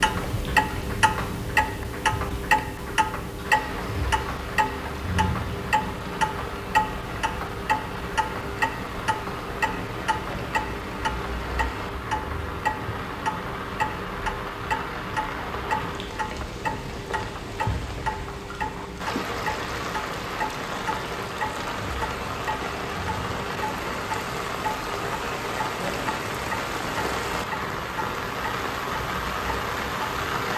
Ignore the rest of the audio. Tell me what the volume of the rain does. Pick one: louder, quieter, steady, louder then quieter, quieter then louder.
louder.